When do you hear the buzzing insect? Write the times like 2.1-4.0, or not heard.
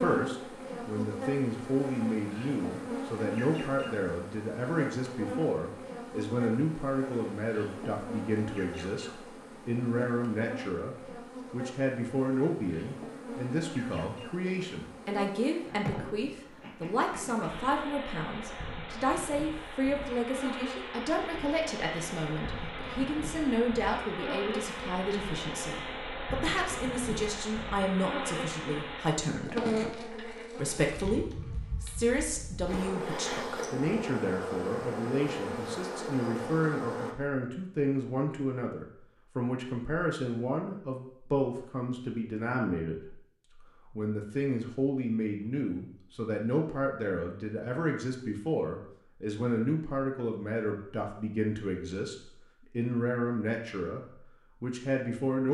0.0-37.1.